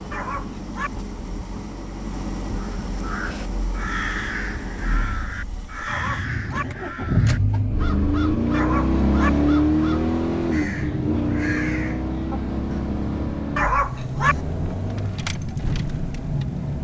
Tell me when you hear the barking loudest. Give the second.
14 s.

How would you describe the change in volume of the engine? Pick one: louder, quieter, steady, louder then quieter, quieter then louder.
louder then quieter.